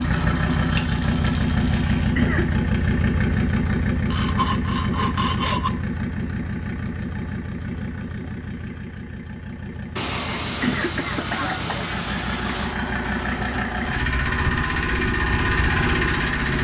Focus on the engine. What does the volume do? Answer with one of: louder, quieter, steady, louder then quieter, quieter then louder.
quieter then louder.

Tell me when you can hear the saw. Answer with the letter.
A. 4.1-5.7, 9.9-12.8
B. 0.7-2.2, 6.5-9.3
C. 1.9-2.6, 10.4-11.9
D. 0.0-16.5
A.